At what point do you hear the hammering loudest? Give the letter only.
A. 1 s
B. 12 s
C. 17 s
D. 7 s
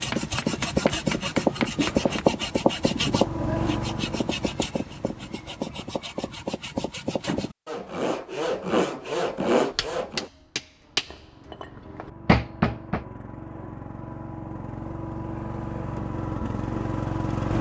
B.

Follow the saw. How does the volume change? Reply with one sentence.
The volume of the saw goes down, then up.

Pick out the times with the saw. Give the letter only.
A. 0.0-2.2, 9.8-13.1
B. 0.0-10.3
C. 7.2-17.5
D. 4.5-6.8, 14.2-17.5
B.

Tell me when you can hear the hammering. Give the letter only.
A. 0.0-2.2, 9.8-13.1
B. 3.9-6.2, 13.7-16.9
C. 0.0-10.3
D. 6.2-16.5
A.